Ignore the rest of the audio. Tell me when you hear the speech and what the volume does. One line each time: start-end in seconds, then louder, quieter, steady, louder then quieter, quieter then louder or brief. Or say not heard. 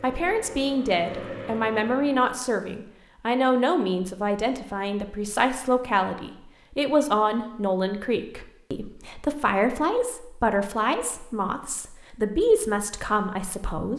0.0-13.9 steady.